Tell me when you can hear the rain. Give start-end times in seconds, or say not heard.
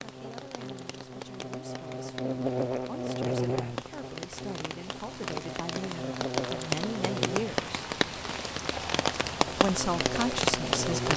0.0-11.1.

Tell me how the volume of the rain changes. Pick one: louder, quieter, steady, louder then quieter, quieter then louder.
louder.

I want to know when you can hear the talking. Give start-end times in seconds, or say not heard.
0.0-7.8, 9.6-11.1.